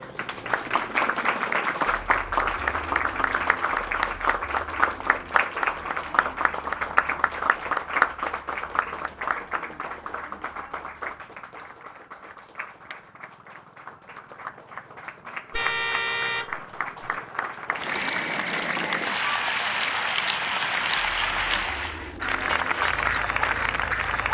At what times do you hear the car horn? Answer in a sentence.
You can hear the car horn from 15.5 to 17.2 s.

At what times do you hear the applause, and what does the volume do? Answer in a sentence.
You can hear the applause from 0.0 to 24.2 s, getting quieter then louder.